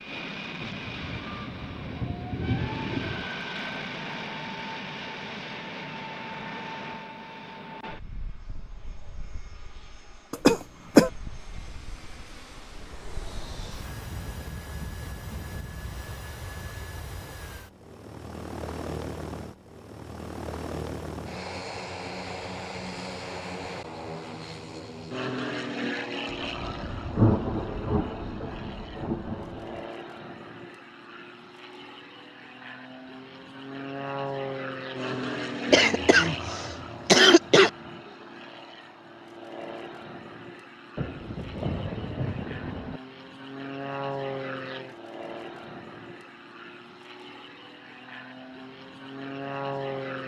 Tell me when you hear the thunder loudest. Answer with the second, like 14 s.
27 s.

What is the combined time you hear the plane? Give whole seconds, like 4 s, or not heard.
50 s.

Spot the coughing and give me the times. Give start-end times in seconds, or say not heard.
10.3-11.1, 35.7-37.7.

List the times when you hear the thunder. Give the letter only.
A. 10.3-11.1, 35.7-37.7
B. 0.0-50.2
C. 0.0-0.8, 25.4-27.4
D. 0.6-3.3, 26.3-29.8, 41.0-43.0
D.